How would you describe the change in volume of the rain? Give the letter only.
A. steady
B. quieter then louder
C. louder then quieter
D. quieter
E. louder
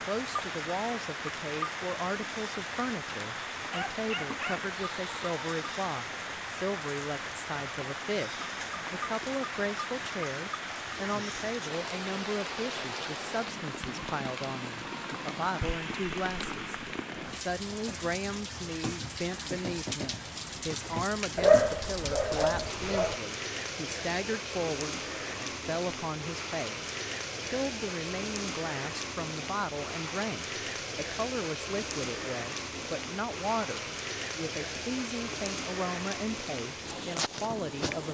A.